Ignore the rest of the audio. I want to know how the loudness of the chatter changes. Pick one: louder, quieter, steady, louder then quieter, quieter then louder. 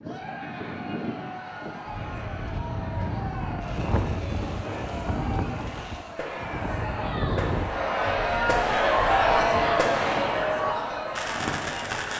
louder.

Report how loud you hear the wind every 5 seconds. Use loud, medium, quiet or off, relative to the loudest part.
loud, loud, medium.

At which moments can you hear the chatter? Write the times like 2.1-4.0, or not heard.
0.0-12.1.